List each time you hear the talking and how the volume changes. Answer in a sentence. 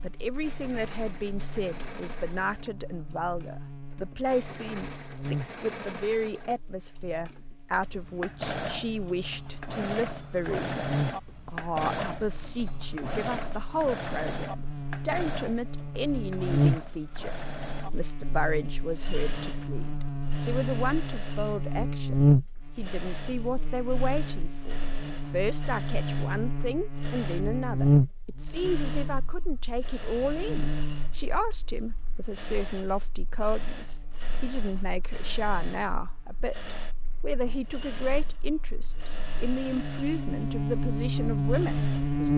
The talking can be heard from 0.0 to 42.3 s, at a steady volume.